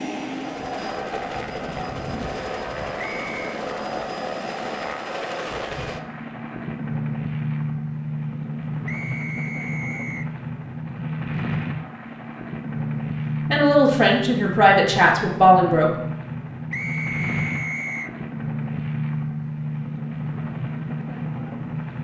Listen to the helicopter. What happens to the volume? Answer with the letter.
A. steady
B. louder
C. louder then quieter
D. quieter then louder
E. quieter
A.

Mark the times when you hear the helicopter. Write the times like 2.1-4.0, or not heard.
0.0-21.9.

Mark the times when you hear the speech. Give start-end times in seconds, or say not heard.
13.5-15.9.